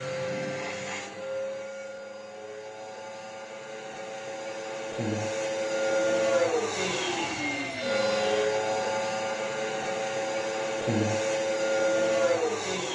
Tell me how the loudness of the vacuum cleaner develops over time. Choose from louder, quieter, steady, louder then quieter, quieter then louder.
louder.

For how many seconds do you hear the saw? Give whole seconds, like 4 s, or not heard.
2 s.